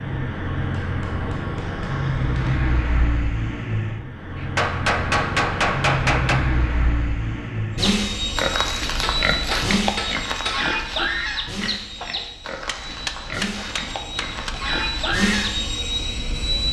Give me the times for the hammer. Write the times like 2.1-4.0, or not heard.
0.7-2.6, 4.3-6.5, 9.0-10.7, 12.7-14.6.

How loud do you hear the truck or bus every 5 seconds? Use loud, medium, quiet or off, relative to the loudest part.
loud, loud, medium, loud.